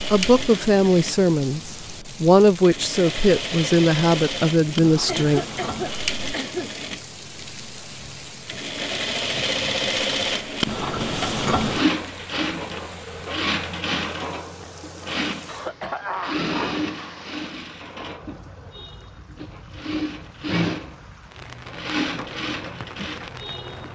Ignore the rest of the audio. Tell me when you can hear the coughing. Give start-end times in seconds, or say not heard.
5.0-6.7, 15.4-17.2.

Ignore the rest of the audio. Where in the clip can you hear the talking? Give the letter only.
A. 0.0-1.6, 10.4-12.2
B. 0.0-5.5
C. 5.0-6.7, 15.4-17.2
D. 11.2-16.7
B.